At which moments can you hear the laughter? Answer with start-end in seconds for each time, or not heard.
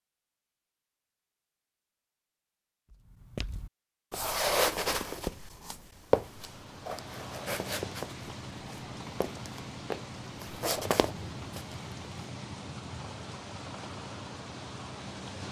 not heard.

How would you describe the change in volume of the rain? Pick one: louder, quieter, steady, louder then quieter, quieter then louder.
steady.